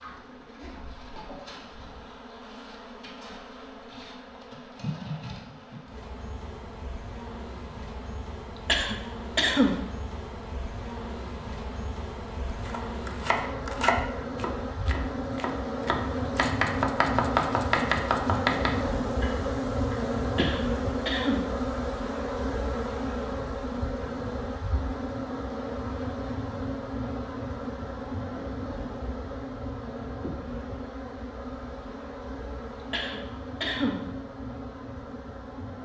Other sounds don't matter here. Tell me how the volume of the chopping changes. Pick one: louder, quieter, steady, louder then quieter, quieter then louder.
quieter then louder.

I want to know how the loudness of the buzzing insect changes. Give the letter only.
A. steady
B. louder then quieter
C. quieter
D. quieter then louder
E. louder
B.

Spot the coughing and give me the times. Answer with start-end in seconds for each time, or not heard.
8.6-9.8, 20.4-21.4, 32.9-34.0.